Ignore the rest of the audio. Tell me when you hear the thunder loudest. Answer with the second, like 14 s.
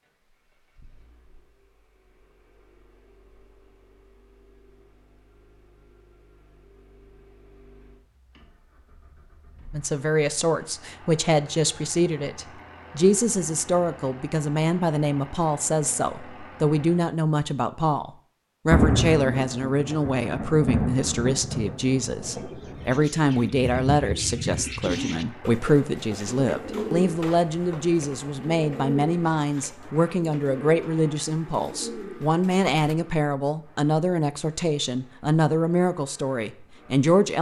19 s.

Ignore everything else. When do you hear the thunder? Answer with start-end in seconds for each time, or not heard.
18.7-23.1.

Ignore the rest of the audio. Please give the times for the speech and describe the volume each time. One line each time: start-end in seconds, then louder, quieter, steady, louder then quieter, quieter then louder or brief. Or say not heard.
9.7-37.3 steady.